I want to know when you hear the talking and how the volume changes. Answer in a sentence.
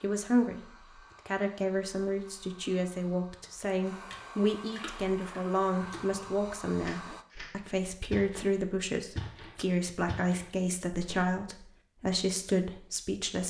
You can hear the talking from 0.0 to 13.4 s, at a steady volume.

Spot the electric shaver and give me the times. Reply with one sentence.
You can't hear the electric shaver here.